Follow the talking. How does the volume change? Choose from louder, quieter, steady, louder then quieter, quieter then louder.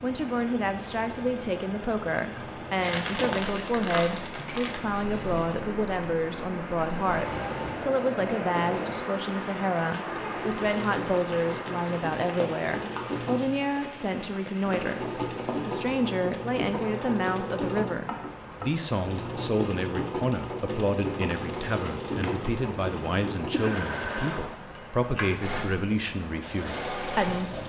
steady.